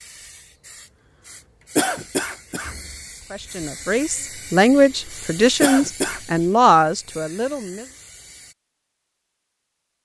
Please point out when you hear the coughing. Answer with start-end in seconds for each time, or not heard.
1.8-2.7, 5.6-6.2.